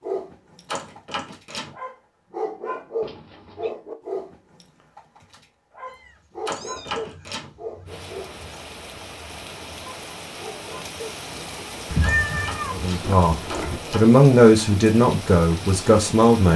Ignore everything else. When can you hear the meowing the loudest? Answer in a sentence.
The loudest moment of the meowing is at 12 seconds.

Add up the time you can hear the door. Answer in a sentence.
The door can be heard for 4 seconds in total.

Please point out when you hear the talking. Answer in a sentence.
The talking can be heard from 12.7 to 16.5 s.